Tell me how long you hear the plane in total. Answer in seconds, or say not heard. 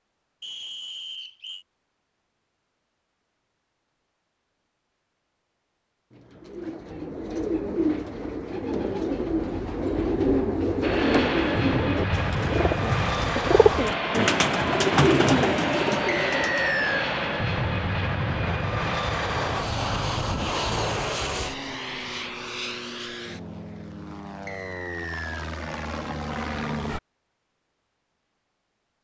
16 s.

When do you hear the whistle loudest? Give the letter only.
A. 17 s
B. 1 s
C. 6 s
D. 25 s
A.